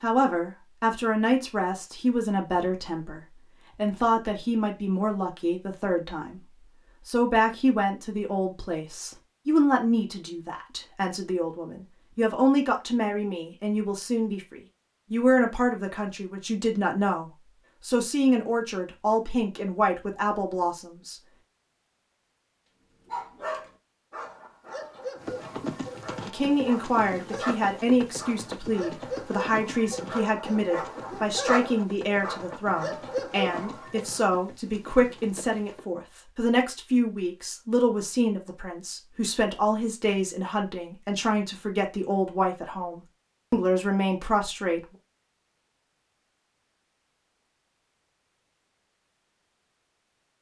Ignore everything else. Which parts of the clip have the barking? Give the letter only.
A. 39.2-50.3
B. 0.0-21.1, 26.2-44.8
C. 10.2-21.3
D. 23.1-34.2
D.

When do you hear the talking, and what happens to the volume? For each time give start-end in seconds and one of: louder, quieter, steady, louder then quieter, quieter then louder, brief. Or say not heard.
0.0-21.1 steady
26.2-44.8 steady.